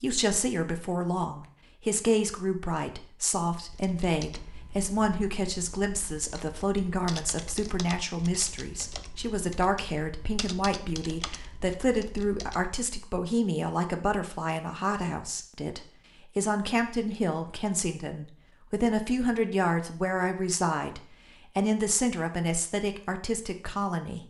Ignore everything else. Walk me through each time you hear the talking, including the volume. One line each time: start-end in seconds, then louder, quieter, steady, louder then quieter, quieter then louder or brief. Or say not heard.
0.0-24.2 steady.